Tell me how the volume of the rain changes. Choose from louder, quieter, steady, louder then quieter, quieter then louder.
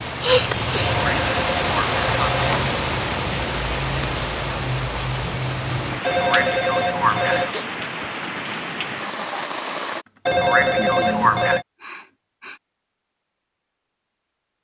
quieter.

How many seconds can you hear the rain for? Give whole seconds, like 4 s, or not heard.
10 s.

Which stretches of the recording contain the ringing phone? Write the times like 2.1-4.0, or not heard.
0.8-2.8, 6.0-7.5, 10.2-11.7.